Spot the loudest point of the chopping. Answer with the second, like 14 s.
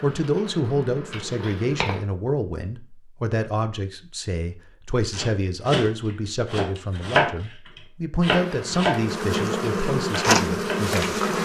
7 s.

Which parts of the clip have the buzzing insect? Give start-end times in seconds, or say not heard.
0.0-2.0, 8.2-11.4.